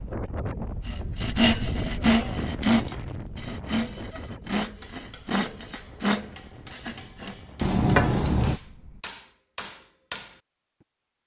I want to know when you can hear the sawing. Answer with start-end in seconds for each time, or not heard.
0.8-7.3.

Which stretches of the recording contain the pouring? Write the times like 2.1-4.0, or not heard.
7.6-8.6.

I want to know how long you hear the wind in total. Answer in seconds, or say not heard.
9 s.